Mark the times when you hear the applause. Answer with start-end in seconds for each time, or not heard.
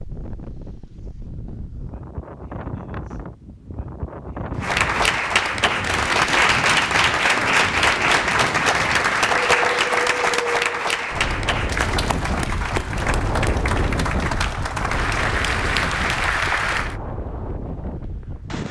4.6-16.9.